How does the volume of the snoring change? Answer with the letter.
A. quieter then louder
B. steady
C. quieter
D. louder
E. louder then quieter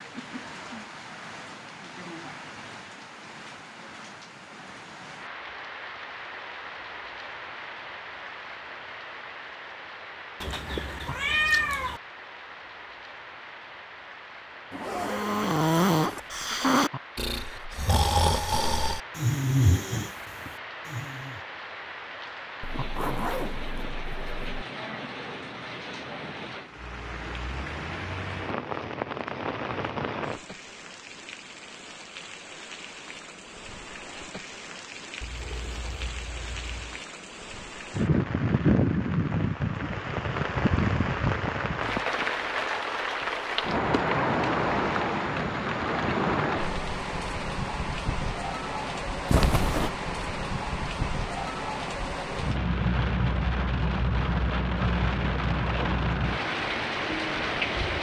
C.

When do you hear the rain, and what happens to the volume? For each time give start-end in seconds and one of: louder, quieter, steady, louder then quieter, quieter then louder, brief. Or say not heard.
0.0-57.9 louder.